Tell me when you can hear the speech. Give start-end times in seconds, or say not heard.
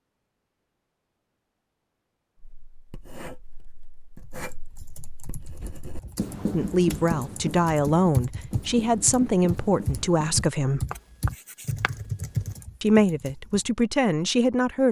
6.5-10.8, 12.8-14.8.